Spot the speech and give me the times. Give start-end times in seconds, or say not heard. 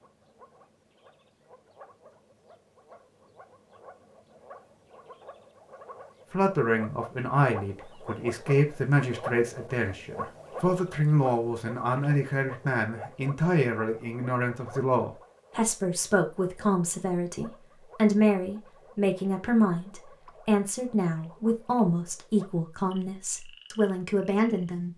6.3-24.9.